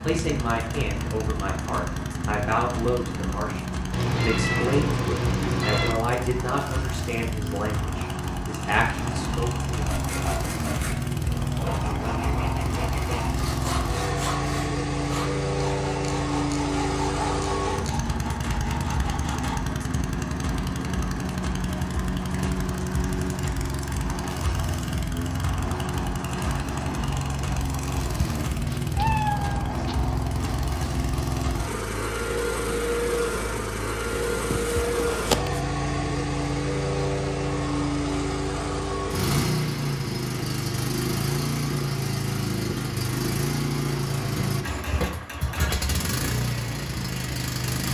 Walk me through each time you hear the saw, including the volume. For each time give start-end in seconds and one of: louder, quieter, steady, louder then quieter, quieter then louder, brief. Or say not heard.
9.8-19.6 steady.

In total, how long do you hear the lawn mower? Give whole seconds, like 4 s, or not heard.
48 s.